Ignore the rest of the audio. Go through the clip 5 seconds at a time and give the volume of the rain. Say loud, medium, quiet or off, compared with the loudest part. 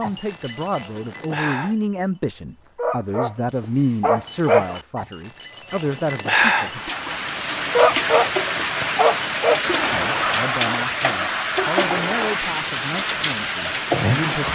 off, loud, loud.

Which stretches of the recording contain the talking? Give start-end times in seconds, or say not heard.
0.0-6.9, 9.9-14.5.